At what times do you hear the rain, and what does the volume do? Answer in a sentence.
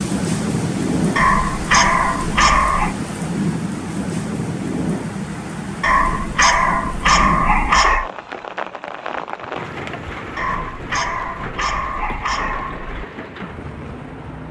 You can hear the rain from 0.0 to 14.4 s, getting quieter.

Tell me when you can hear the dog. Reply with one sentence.
You can hear the dog from 1.1 to 3.0 s, from 5.8 to 8.1 s and from 10.3 to 12.9 s.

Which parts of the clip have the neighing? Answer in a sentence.
The neighing can't be heard in this clip.